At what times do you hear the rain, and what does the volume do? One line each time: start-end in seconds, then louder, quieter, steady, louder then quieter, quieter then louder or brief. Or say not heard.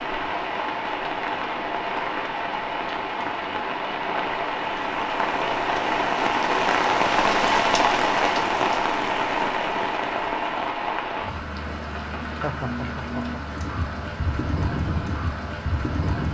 0.0-16.2 louder then quieter.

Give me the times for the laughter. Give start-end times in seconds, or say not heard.
12.2-13.4.